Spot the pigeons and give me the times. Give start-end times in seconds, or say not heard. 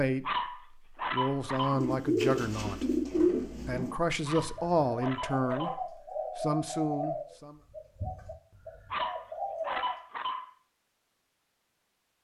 1.6-10.0.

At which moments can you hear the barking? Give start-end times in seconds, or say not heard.
0.2-1.9, 4.2-5.8, 8.9-10.5.